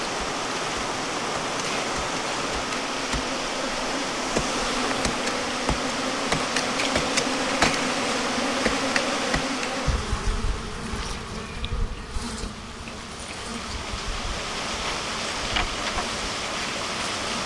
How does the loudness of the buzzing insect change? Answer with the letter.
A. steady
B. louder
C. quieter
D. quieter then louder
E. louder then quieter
E.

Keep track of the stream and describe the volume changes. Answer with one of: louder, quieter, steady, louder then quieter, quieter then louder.
quieter then louder.